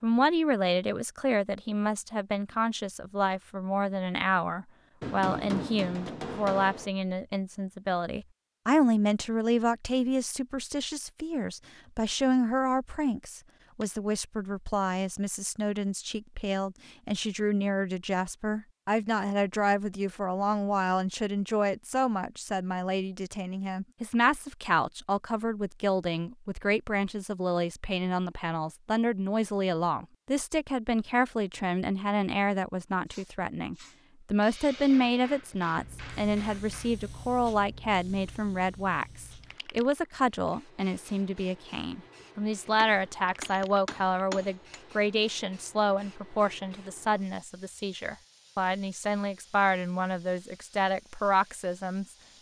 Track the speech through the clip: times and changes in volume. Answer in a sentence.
The speech can be heard from 0.0 to 52.0 s, at a steady volume.